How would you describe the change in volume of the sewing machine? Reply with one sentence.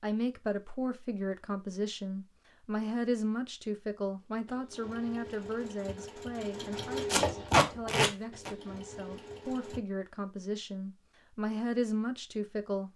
The volume of the sewing machine goes up, then down.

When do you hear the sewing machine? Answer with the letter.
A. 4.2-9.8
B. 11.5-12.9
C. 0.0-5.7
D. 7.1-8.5
A.